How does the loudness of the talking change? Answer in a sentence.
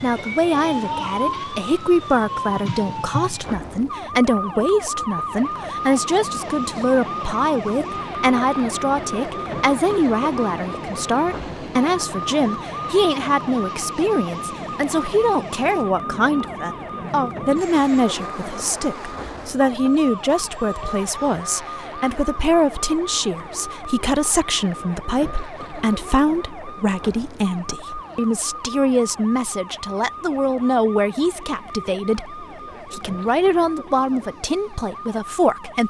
The volume of the talking stays about the same.